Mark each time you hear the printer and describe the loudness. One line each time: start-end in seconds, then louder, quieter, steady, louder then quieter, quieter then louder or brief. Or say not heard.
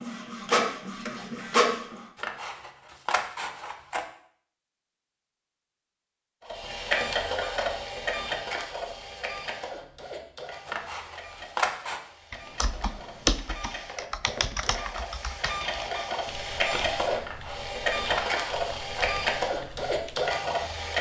0.0-2.0 brief
6.4-20.9 quieter then louder.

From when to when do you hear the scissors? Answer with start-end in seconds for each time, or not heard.
2.1-4.0, 10.7-12.0, 17.2-19.1.